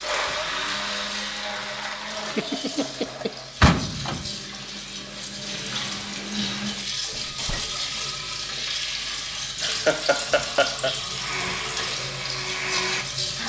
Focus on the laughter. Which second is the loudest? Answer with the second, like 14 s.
10 s.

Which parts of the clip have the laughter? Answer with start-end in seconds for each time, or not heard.
2.4-3.3, 9.6-10.9.